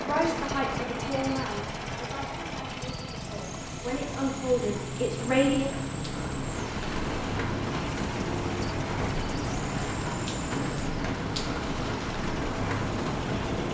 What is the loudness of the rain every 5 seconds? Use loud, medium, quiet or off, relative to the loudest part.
medium, loud, loud.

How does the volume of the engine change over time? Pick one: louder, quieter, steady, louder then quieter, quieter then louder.
steady.